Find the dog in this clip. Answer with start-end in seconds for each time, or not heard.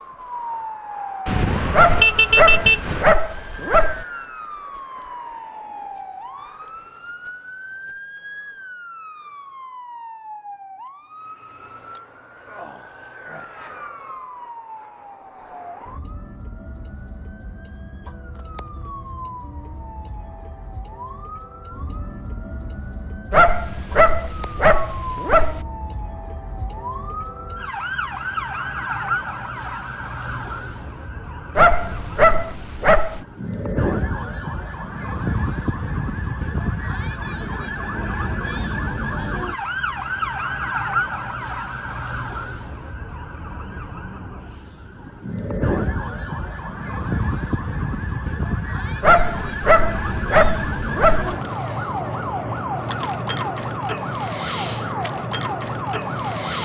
1.7-4.0, 23.3-25.6, 31.6-33.2, 49.0-51.4.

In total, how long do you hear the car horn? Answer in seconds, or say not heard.
2 s.